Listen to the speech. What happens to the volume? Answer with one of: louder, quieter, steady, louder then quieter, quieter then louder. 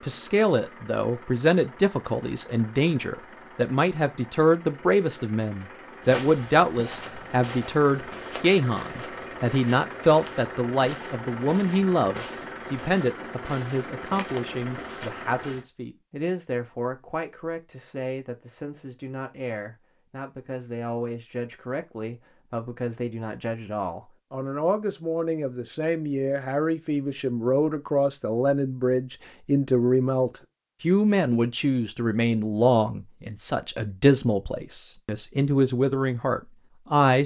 quieter then louder.